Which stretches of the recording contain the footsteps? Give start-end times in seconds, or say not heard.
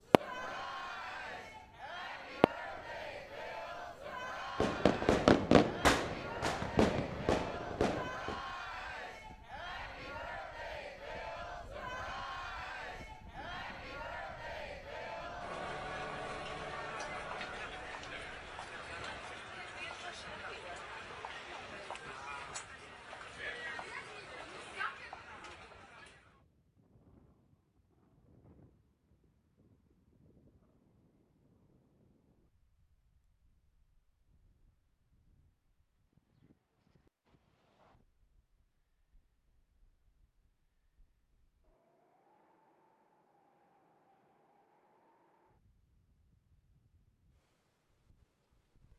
not heard.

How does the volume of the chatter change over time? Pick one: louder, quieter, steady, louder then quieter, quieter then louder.
steady.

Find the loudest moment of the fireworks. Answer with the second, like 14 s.
5 s.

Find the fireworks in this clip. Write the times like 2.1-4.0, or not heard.
0.1-0.6, 2.4-2.9, 4.5-8.4.